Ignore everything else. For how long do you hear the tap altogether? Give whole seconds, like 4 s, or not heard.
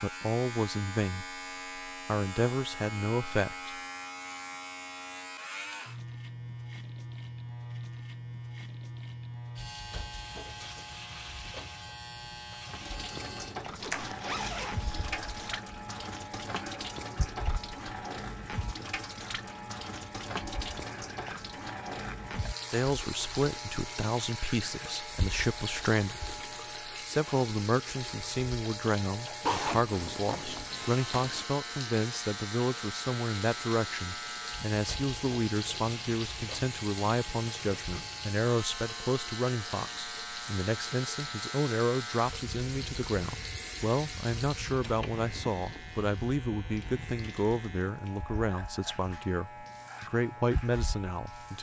39 s.